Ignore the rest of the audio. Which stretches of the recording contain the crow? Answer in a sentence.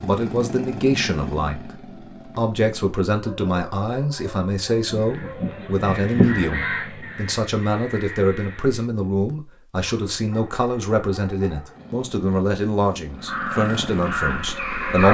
You can hear the crow from 4.8 to 8.8 s and from 13.2 to 15.0 s.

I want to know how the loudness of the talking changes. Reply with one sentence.
The volume of the talking stays about the same.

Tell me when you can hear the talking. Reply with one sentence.
You can hear the talking from 0.0 to 15.0 s.